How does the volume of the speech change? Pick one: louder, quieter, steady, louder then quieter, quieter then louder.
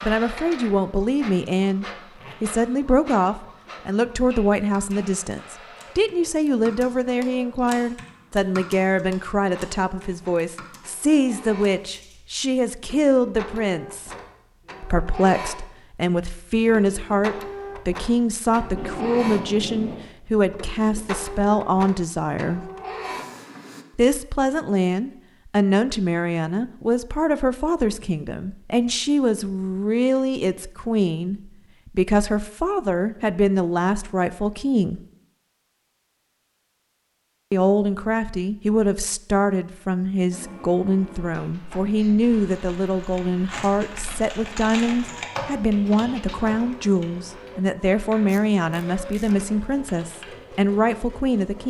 steady.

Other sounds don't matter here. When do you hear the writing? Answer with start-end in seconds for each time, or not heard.
not heard.